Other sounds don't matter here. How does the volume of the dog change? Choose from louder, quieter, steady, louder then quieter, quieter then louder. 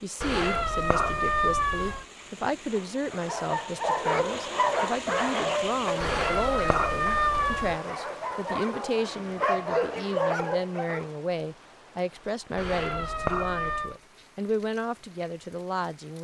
quieter then louder.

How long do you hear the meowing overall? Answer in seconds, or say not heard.
5 s.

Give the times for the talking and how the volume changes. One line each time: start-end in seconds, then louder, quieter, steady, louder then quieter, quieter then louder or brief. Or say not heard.
0.0-16.1 steady.